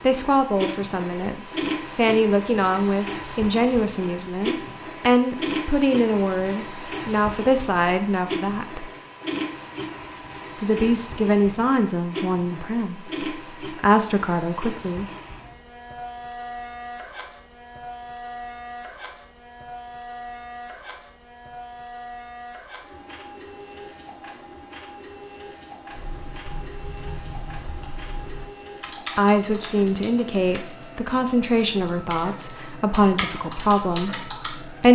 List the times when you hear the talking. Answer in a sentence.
You can hear the talking from 0.0 to 8.9 s, from 10.6 to 15.1 s and from 29.1 to 34.9 s.